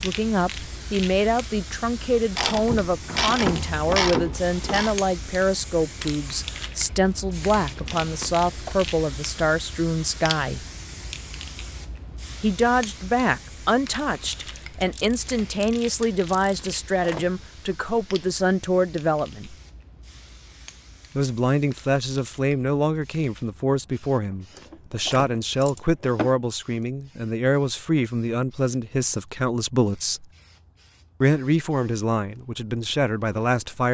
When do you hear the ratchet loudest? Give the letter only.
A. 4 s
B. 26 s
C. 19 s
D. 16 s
A.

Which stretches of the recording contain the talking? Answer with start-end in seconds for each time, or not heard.
0.0-10.7, 12.4-19.6, 21.1-30.2, 31.2-33.9.